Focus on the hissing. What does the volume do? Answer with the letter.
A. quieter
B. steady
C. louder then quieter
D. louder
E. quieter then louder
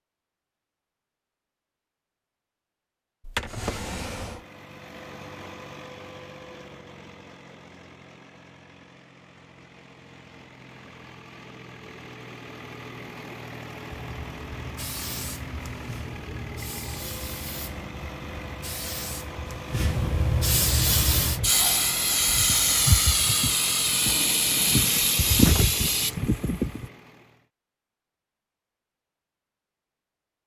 D.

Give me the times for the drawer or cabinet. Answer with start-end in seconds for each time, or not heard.
3.2-4.4, 24.1-25.8.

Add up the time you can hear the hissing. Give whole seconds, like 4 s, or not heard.
13 s.